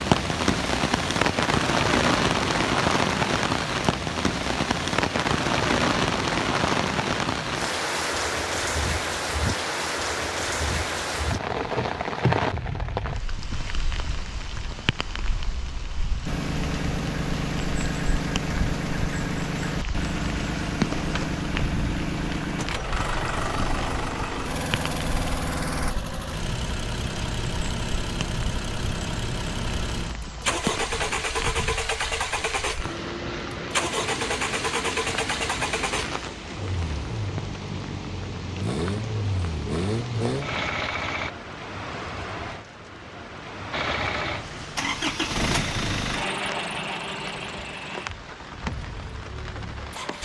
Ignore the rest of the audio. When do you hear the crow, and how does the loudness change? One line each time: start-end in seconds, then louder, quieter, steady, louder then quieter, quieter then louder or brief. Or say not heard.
not heard.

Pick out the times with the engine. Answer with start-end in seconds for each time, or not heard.
16.2-41.3, 43.7-50.2.